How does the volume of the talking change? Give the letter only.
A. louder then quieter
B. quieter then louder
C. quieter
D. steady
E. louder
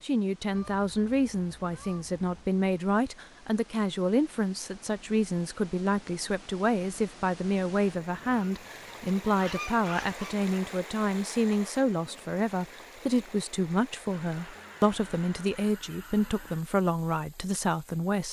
D.